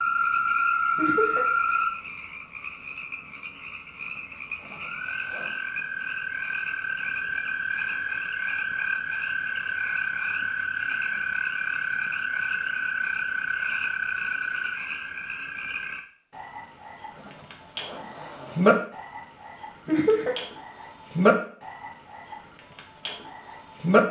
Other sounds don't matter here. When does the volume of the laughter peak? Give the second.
20 s.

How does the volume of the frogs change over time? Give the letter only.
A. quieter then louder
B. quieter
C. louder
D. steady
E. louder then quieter
D.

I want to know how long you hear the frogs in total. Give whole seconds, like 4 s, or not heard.
24 s.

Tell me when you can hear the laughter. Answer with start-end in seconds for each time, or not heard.
0.9-1.4, 19.9-20.4.